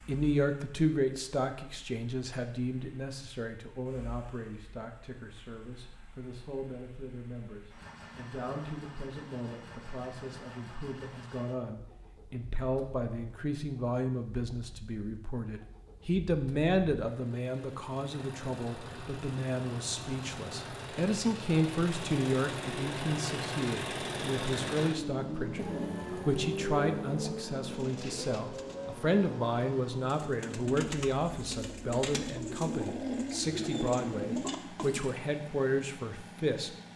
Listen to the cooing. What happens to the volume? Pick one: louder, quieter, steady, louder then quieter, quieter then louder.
quieter then louder.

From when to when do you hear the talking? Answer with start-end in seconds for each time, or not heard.
0.1-36.9.